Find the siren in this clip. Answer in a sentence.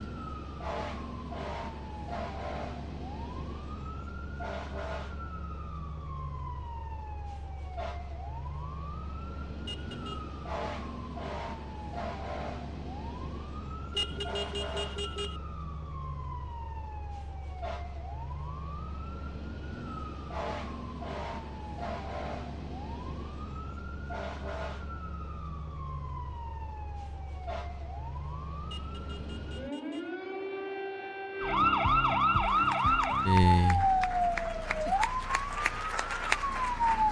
The siren can be heard from 0.0 to 37.0 s.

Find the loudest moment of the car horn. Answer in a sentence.
The volume of the car horn peaks at 14 seconds.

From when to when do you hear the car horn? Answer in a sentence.
The car horn can be heard from 9.6 to 10.2 s, from 13.9 to 15.4 s and from 28.6 to 30.1 s.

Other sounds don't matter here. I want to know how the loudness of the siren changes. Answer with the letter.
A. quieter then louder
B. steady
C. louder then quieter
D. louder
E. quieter
D.